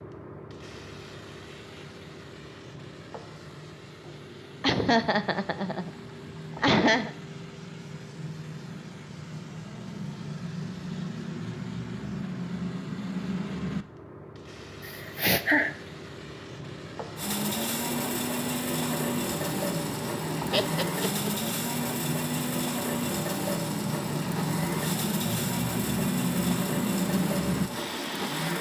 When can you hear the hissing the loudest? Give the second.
27 s.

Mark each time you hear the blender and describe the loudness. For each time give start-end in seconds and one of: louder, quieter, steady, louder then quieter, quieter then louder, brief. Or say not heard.
17.1-28.5 steady.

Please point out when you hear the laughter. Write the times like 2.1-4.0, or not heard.
4.6-5.9, 6.6-7.1, 14.8-15.8, 20.5-21.3.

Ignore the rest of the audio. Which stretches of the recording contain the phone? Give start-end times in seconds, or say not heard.
not heard.